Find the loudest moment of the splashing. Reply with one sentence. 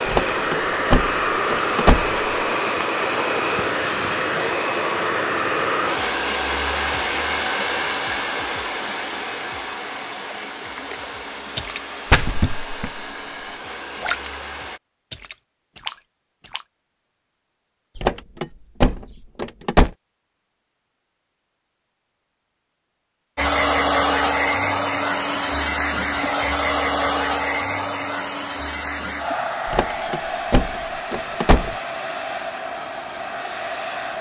The volume of the splashing peaks at 12 seconds.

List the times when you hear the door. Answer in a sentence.
You can hear the door from 0.1 to 2.2 s, from 17.9 to 19.9 s and from 29.6 to 31.8 s.